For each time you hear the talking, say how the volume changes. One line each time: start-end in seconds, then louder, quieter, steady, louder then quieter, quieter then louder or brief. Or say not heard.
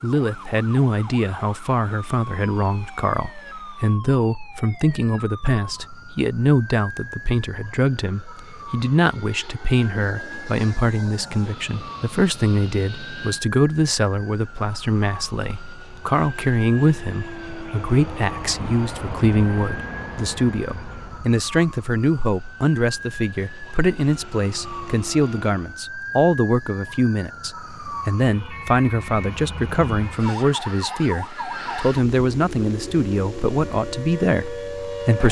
0.0-35.2 steady.